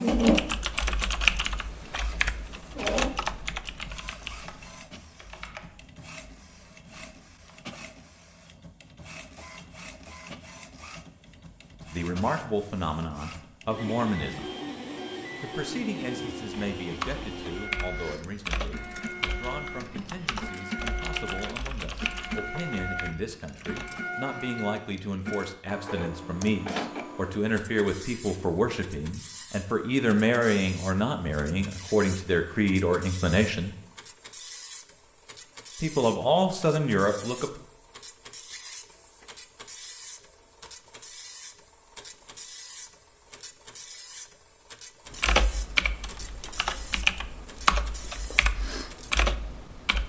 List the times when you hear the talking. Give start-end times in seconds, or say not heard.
11.9-14.6, 15.4-33.8, 35.8-37.6.